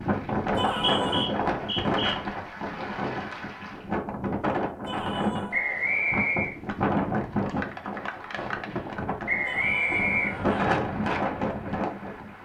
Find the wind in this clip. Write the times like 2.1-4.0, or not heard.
0.0-12.3.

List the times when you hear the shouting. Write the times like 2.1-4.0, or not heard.
0.6-1.3, 4.8-5.7, 9.4-10.6.